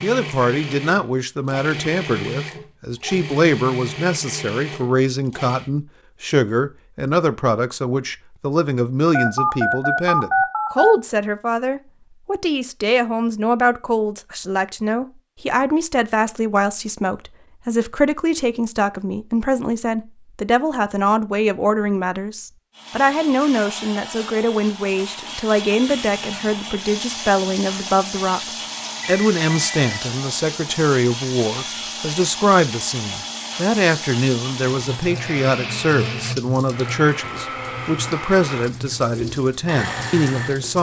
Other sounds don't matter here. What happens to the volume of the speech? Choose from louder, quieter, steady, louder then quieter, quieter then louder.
steady.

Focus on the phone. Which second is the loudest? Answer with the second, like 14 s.
10 s.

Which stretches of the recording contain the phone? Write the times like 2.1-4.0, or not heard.
9.1-10.9, 29.0-29.8.